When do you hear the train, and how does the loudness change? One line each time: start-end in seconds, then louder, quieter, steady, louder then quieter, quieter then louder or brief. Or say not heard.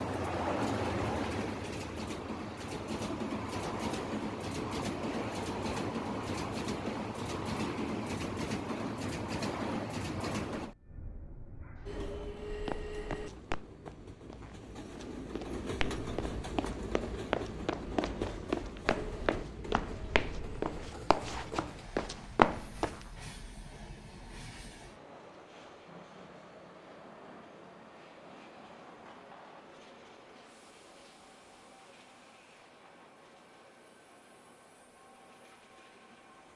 0.0-36.5 quieter.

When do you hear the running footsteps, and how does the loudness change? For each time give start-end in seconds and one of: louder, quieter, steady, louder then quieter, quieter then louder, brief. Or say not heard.
12.7-23.0 louder.